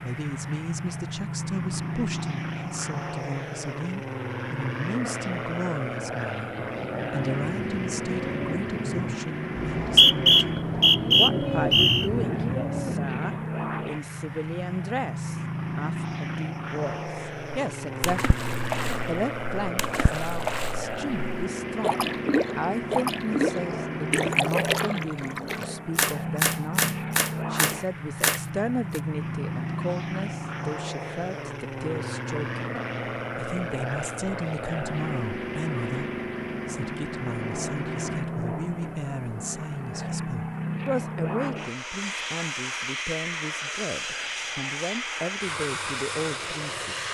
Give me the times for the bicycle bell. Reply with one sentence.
You can't hear the bicycle bell here.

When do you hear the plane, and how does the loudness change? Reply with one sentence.
You can hear the plane from 0.0 to 47.0 s, at a steady volume.